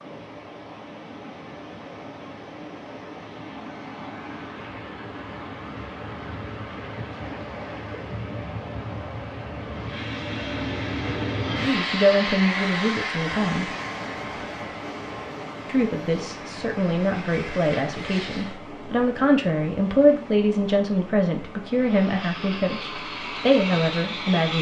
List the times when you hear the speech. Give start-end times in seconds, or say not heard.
11.6-13.7, 15.7-24.5.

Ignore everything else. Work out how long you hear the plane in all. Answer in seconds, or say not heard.
12 s.